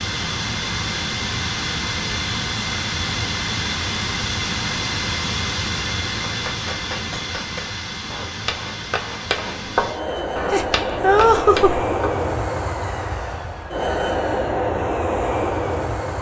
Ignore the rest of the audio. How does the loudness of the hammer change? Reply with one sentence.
The volume of the hammer goes up, then down.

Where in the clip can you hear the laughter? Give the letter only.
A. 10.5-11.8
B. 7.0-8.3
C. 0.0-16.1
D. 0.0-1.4
A.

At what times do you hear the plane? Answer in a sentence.
You can hear the plane from 0.0 to 16.1 s.